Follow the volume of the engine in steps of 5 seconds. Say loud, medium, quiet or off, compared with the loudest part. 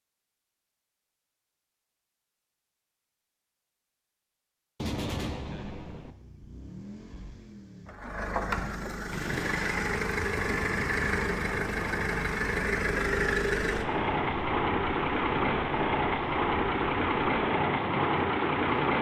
off, medium, loud, loud.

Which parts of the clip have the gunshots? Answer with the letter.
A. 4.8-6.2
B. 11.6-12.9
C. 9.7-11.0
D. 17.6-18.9
A.